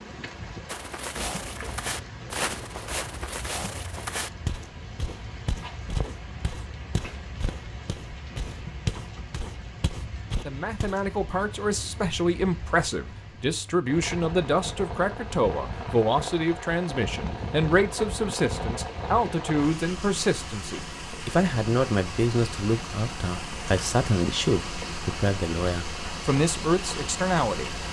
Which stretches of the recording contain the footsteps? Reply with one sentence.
You can hear the footsteps from 0.7 to 11.1 s.